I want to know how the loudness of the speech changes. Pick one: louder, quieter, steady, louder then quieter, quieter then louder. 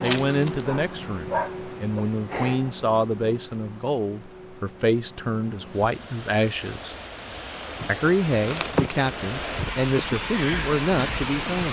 steady.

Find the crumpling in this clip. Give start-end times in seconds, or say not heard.
0.1-0.7, 7.8-9.2.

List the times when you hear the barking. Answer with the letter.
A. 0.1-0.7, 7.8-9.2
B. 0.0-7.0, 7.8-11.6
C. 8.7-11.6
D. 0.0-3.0
D.